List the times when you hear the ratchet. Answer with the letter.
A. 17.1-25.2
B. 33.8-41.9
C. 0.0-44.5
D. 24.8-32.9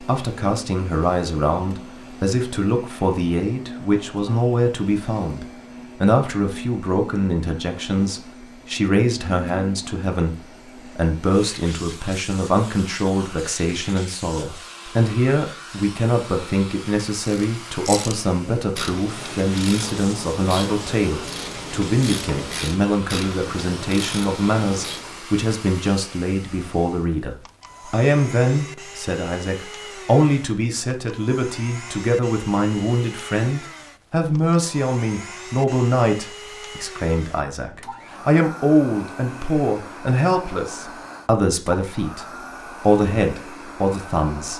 A.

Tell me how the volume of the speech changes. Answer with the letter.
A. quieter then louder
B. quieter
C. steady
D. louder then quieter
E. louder
C.